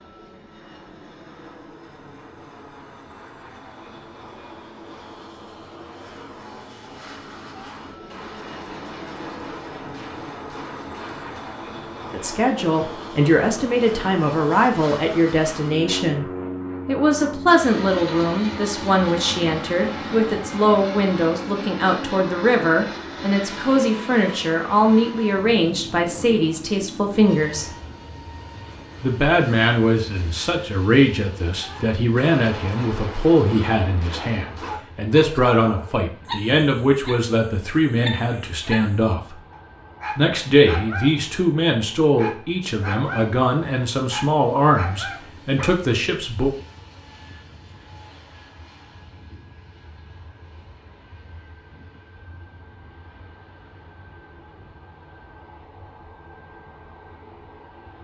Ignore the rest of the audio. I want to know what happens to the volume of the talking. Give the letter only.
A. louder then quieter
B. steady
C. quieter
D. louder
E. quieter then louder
B.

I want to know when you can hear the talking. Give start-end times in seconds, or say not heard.
12.1-16.2, 16.9-27.8, 29.0-39.4, 40.1-46.5.